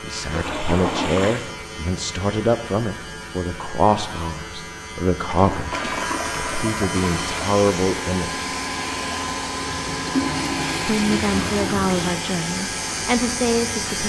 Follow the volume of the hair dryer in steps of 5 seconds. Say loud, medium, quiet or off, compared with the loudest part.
off, loud, loud.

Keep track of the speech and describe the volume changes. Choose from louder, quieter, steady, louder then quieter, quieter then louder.
steady.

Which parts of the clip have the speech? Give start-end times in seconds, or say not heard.
0.0-8.5, 10.8-14.0.